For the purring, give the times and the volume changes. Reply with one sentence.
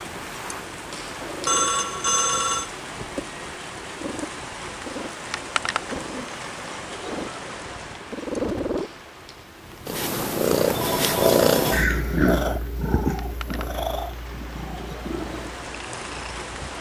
You can hear the purring from 0.0 to 16.7 s, getting louder then quieter.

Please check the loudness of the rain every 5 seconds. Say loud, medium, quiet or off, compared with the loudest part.
loud, loud, medium, loud.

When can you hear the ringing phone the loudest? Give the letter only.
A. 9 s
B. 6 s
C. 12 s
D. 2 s
D.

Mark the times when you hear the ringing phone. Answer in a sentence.
The ringing phone can be heard from 1.4 to 2.7 s and from 10.7 to 12.3 s.